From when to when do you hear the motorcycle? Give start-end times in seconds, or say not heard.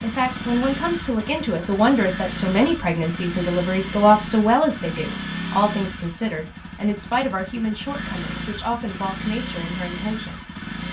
0.0-10.8.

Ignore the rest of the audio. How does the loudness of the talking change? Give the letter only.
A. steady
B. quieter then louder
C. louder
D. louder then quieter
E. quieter
E.